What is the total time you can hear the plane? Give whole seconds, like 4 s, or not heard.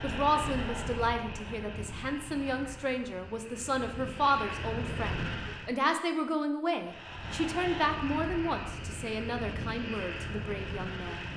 10 s.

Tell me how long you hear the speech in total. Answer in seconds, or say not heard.
11 s.